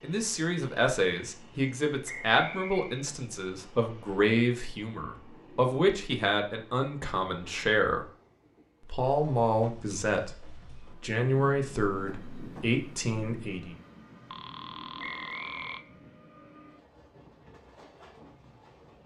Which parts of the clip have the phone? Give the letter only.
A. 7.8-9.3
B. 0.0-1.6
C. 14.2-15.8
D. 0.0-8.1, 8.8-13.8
C.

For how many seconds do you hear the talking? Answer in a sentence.
The talking can be heard for 13 seconds in total.